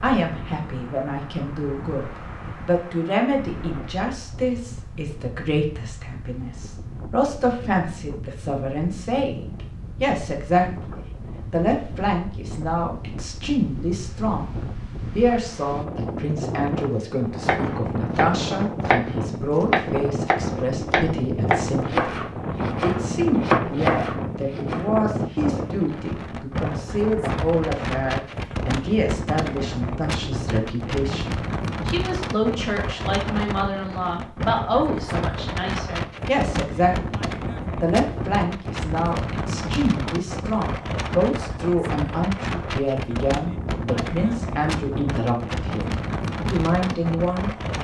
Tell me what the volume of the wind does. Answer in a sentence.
The loudness of the wind goes up.